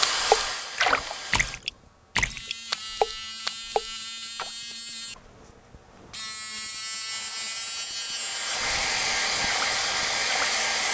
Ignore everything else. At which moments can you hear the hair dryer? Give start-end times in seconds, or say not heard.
0.0-1.6, 7.0-10.8.